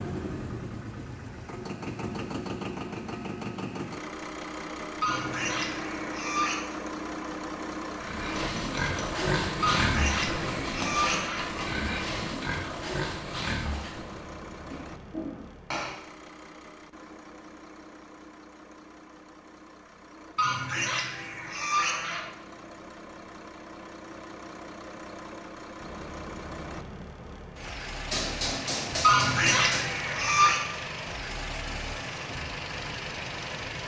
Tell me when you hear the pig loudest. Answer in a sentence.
The loudest moment of the pig is at 10 seconds.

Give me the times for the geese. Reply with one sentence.
You can hear the geese from 5.0 to 6.7 s, from 9.6 to 11.6 s, from 20.4 to 22.3 s and from 29.0 to 30.6 s.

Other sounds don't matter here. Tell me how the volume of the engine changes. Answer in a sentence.
The volume of the engine goes down, then up.